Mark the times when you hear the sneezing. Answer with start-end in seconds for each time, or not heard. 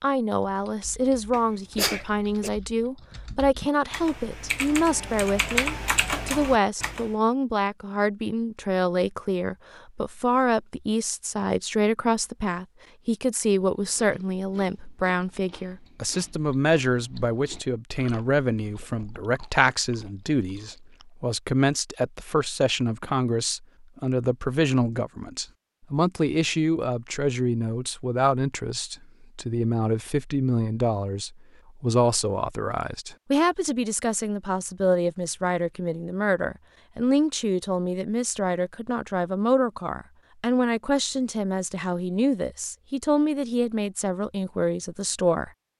1.3-2.5.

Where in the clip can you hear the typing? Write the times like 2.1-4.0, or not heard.
0.4-7.1.